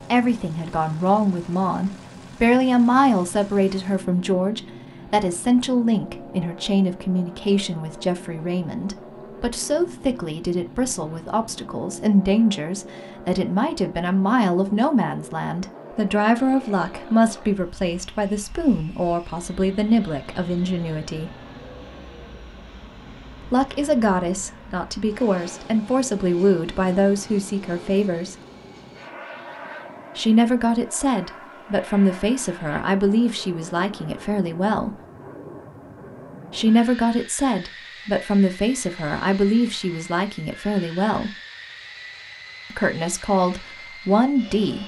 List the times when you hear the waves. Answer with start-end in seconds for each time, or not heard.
not heard.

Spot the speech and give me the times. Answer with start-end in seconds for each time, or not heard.
0.0-21.4, 23.4-28.4, 30.1-35.0, 36.5-41.4, 42.7-44.8.